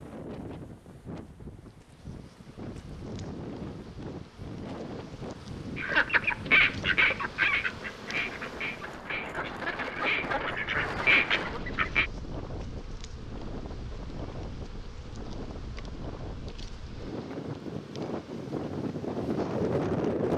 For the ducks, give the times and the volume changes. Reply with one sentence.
You can hear the ducks from 5.8 to 12.1 s, getting quieter then louder.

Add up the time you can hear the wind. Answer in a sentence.
You can hear the wind for 20 seconds altogether.